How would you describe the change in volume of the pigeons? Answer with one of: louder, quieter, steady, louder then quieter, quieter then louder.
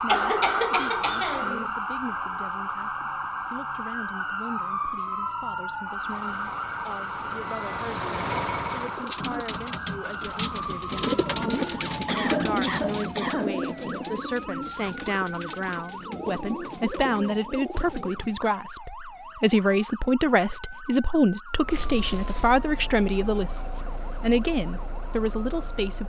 louder then quieter.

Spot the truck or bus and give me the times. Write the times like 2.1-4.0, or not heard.
6.0-9.1, 21.5-26.0.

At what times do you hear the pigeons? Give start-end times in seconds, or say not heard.
8.8-18.4.